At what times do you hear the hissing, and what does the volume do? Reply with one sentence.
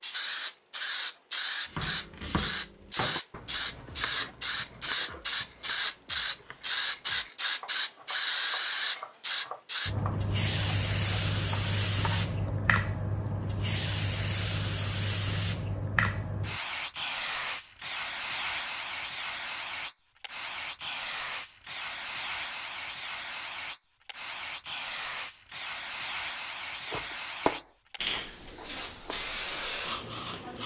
The hissing can be heard from 0.0 to 30.6 s, getting quieter.